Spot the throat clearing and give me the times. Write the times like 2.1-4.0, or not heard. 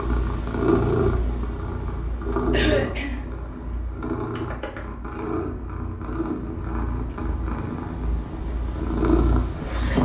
2.5-3.2.